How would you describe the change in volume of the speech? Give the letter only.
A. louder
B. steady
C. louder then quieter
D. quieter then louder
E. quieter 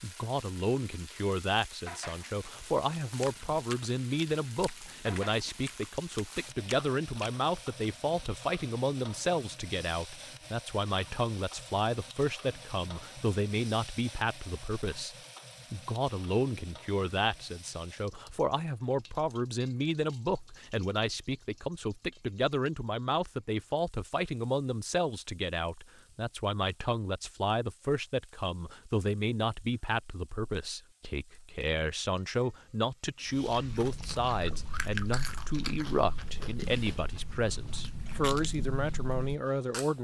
B.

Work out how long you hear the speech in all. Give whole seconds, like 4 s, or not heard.
40 s.